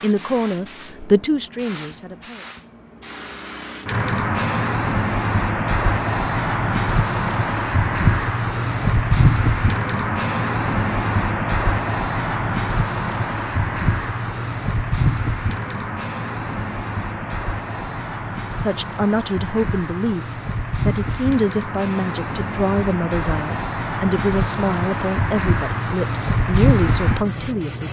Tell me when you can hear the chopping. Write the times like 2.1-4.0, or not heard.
not heard.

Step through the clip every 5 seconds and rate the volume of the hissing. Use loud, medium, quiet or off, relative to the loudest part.
medium, loud, loud, medium, medium, loud.